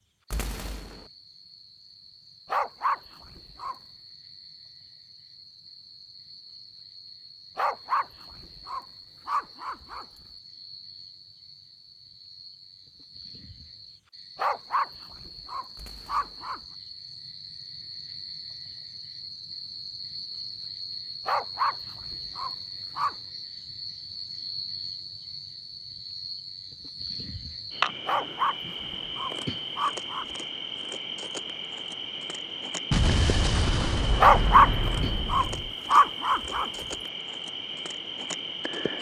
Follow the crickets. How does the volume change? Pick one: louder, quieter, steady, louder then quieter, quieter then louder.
louder.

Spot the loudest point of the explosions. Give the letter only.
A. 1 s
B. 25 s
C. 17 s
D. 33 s
D.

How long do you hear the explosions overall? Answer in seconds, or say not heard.
4 s.